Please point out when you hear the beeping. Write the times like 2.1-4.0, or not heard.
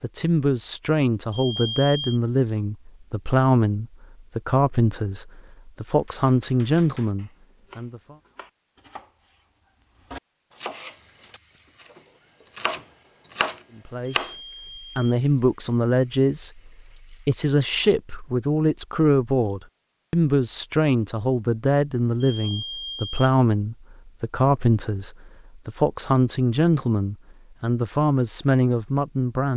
1.3-2.2, 14.2-15.0, 22.2-23.2.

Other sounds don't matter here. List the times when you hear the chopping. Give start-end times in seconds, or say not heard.
5.8-14.3.